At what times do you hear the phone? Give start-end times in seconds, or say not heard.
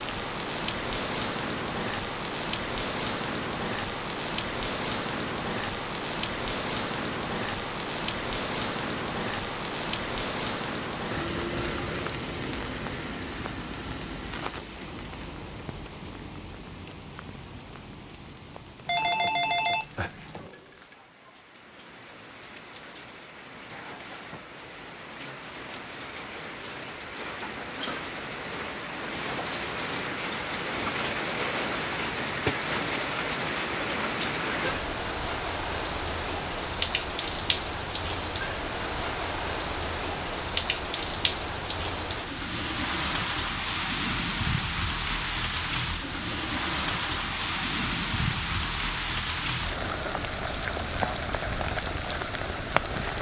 18.9-20.5.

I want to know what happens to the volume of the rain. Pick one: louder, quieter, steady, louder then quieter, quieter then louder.
quieter then louder.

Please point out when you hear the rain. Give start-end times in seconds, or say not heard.
0.0-53.1.